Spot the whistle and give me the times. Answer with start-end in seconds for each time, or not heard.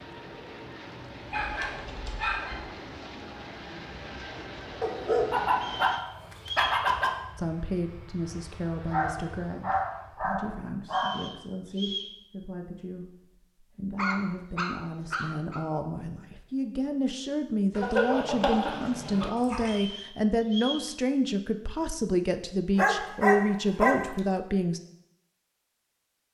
5.5-6.8, 10.8-12.2, 19.6-20.9.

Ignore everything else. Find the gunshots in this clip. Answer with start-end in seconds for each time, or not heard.
not heard.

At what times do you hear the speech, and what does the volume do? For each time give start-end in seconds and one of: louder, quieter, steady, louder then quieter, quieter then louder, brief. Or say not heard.
7.3-24.8 louder.